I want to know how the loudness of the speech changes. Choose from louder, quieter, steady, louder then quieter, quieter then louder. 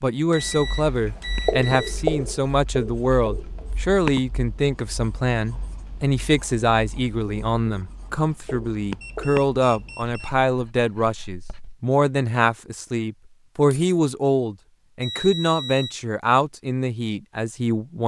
steady.